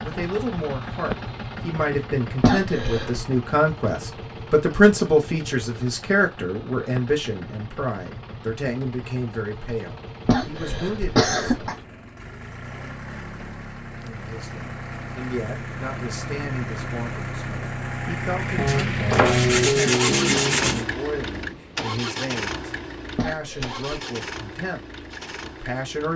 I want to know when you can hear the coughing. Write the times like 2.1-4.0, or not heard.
2.4-3.2, 10.2-11.8, 23.1-23.9.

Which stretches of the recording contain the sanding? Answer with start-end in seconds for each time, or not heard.
18.6-20.9.